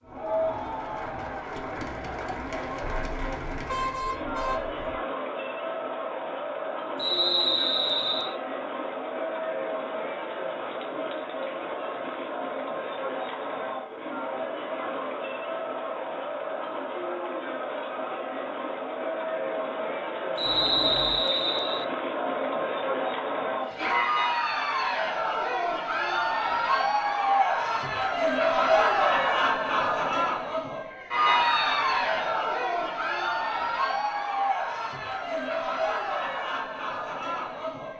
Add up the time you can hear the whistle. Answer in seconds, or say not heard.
4 s.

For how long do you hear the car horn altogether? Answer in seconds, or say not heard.
3 s.